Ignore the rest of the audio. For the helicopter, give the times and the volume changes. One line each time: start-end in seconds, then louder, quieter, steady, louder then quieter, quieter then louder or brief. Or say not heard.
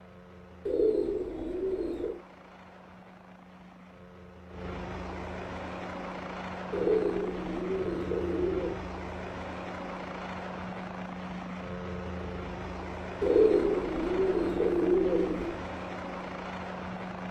0.0-17.2 louder.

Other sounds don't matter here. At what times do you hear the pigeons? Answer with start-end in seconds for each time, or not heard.
0.7-2.2, 6.7-8.8, 13.2-15.6.